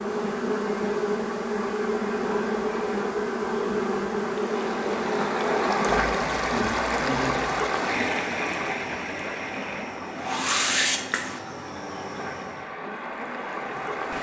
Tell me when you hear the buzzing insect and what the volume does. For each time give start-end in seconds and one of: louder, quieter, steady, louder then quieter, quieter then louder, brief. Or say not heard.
0.0-12.7 quieter.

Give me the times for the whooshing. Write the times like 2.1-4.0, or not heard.
10.2-11.4.